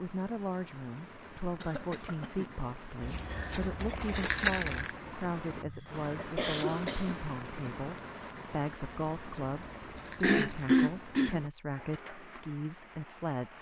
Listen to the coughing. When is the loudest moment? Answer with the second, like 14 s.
11 s.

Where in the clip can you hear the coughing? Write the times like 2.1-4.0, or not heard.
1.6-2.6, 5.6-7.2, 10.2-11.4.